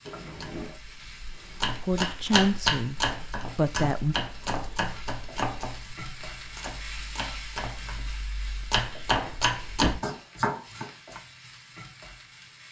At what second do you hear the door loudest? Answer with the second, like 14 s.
10 s.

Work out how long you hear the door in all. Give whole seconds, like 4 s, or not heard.
2 s.